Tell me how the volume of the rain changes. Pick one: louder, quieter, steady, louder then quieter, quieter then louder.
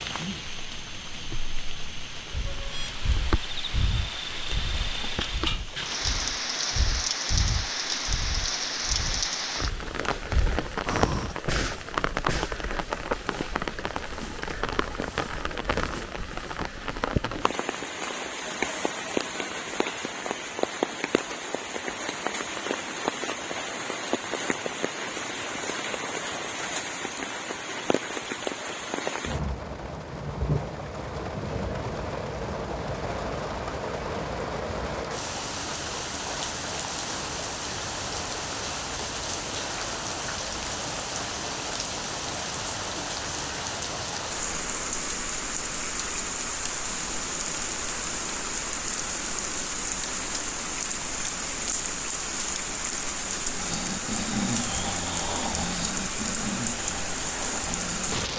steady.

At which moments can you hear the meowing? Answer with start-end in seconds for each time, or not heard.
not heard.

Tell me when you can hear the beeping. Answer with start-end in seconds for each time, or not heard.
2.5-3.1.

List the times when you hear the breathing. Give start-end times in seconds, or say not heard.
2.1-12.6, 53.5-58.2.